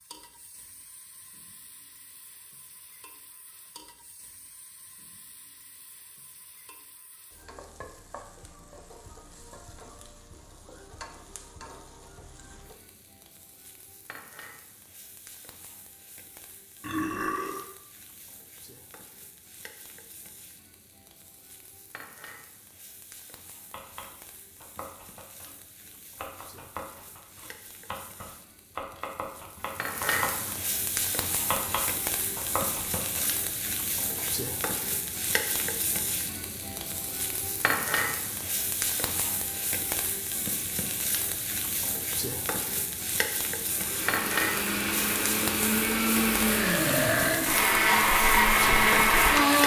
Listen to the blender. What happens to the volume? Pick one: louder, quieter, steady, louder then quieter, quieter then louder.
louder.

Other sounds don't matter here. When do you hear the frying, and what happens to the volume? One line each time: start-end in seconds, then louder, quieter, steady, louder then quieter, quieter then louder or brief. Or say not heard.
0.0-49.6 louder.